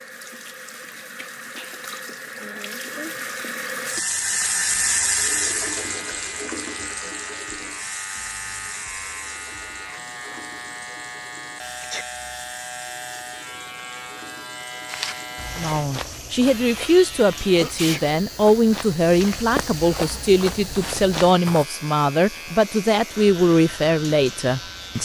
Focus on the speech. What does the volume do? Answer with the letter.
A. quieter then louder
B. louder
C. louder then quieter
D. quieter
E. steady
E.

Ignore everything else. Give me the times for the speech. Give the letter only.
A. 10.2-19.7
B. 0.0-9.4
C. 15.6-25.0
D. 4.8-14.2
C.